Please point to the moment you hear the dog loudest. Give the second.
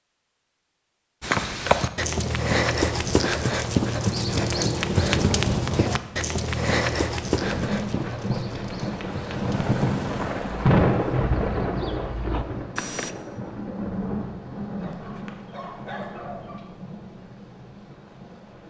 16 s.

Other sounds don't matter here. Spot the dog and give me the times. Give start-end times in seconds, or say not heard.
14.8-16.6.